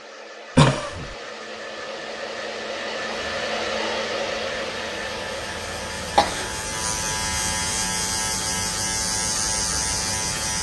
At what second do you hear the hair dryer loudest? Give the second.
4 s.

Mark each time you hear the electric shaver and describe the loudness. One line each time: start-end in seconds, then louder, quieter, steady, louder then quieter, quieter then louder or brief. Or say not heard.
3.0-10.5 louder.